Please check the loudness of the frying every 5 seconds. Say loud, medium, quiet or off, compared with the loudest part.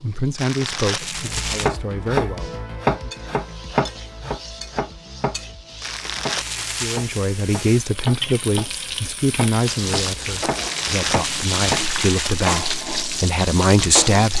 quiet, medium, loud.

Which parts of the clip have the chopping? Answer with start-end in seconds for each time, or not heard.
1.1-11.8.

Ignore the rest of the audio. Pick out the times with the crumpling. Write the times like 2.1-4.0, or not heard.
0.3-1.7, 5.8-7.0, 10.6-12.7.